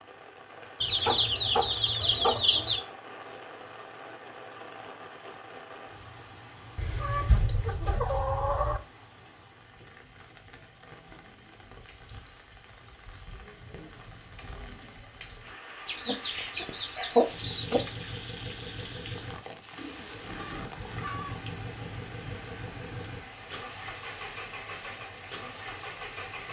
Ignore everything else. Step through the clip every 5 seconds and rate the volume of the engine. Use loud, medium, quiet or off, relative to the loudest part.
off, off, off, loud, loud, loud.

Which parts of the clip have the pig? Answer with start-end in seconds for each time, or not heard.
not heard.